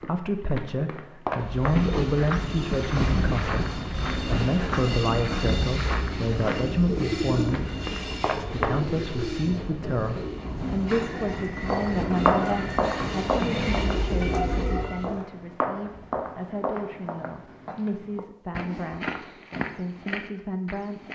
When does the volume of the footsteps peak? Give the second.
12 s.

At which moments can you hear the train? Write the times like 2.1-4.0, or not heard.
1.3-15.2.